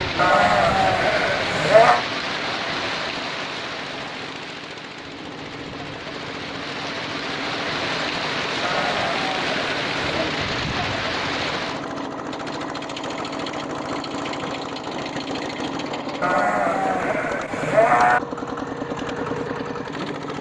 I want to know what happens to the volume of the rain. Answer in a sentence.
The volume of the rain goes down, then up.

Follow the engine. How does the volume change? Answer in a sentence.
The volume of the engine goes up.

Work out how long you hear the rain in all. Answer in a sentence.
The rain can be heard for 12 seconds in total.